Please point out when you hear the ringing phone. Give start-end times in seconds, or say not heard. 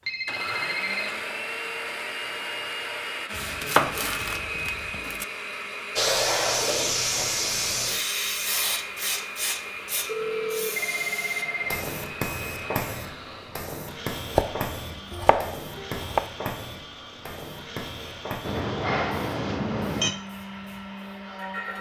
0.1-1.1, 10.1-11.8, 18.4-20.1.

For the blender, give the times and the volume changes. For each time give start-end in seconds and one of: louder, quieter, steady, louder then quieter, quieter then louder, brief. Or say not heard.
0.0-21.7 quieter.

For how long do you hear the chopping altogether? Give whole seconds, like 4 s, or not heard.
4 s.